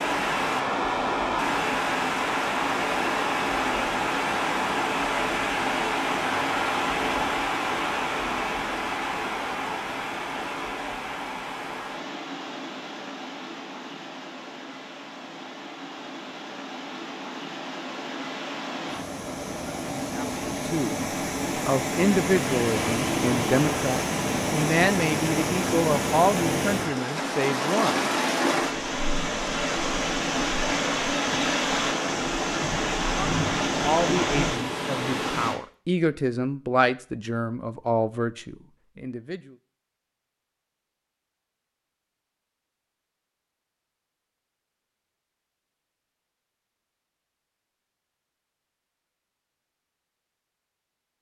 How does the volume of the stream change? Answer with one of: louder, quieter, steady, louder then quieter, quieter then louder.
quieter then louder.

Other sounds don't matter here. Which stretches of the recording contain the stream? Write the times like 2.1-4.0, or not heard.
0.0-35.6.